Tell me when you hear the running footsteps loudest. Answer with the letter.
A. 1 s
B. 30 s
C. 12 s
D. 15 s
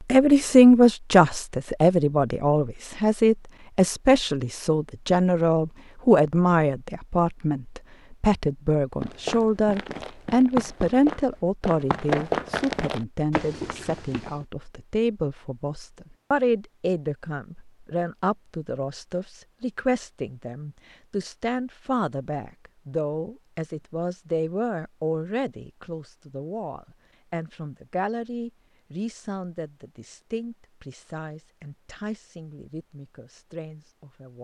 C.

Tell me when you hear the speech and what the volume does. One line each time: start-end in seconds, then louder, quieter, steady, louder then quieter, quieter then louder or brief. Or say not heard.
0.1-34.3 quieter.